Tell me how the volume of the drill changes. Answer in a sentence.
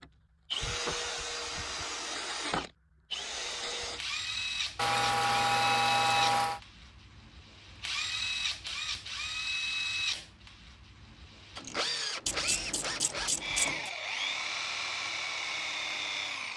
The volume of the drill stays about the same.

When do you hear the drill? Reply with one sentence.
You can hear the drill from 0.0 to 16.5 s.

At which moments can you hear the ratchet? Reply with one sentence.
The ratchet can be heard from 4.8 to 6.6 s and from 12.2 to 13.9 s.